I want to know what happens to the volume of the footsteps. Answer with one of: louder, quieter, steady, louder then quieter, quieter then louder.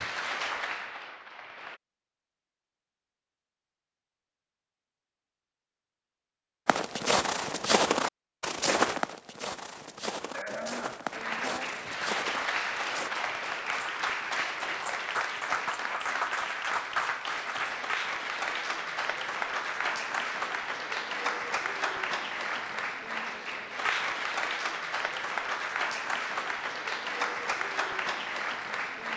quieter.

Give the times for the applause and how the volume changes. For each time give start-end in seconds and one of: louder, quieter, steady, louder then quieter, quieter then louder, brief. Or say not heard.
0.0-1.8 brief
11.1-29.1 steady.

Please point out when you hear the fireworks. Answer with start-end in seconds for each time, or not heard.
not heard.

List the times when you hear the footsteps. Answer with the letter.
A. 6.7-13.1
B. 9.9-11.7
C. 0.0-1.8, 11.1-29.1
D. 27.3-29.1
A.